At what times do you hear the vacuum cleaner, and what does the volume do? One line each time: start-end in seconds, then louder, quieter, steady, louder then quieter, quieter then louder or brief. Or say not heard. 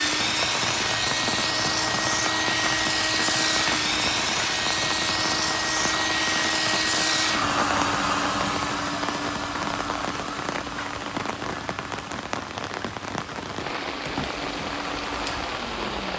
0.0-16.1 quieter.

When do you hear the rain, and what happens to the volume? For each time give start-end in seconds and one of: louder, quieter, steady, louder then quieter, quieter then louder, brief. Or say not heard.
0.0-16.1 steady.